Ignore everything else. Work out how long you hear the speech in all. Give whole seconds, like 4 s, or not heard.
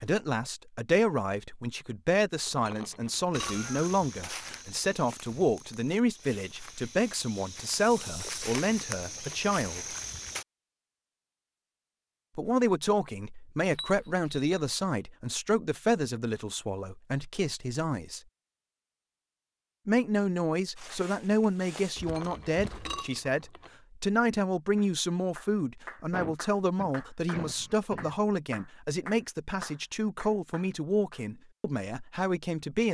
29 s.